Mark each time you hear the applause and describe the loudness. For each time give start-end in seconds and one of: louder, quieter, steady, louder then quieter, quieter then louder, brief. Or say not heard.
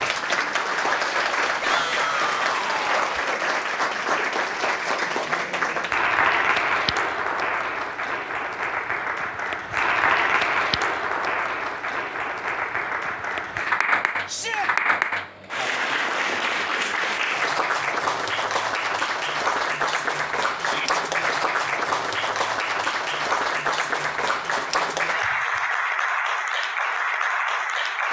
0.0-28.0 steady.